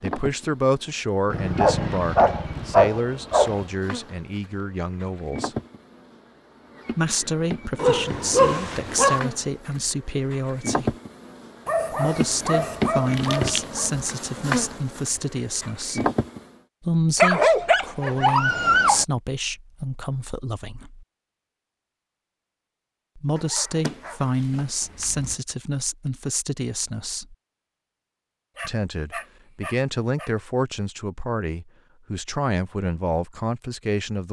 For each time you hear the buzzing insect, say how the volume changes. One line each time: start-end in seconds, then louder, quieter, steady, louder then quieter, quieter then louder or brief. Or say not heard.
0.0-16.5 louder.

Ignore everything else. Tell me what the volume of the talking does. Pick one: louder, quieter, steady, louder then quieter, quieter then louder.
steady.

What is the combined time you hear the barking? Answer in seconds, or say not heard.
12 s.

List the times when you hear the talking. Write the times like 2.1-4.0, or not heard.
0.0-5.5, 7.0-10.9, 11.9-16.1, 16.8-21.1, 23.1-27.4, 28.6-34.2.